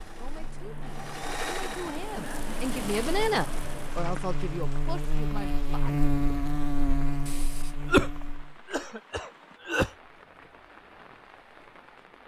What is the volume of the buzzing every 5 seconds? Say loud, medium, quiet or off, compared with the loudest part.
medium, loud, off.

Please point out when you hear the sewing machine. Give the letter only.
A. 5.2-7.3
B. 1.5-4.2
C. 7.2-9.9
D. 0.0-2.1
D.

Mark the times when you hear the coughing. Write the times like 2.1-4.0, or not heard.
7.2-9.9.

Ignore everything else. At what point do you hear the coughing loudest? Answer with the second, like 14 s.
8 s.